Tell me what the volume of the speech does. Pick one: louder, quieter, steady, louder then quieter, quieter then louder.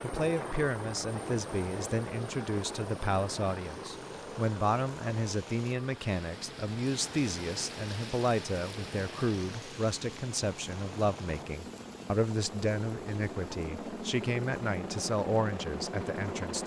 steady.